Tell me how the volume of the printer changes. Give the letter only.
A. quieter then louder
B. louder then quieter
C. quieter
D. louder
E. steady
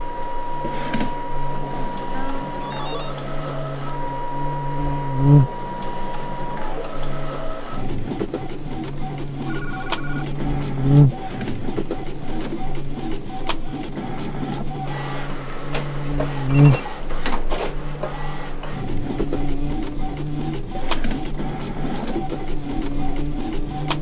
E.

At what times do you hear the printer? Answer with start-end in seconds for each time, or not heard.
0.0-23.9.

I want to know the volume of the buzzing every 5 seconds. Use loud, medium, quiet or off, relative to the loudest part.
medium, loud, loud, loud, medium.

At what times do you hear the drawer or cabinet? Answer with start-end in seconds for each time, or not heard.
0.6-1.9, 11.1-12.7, 20.7-22.4.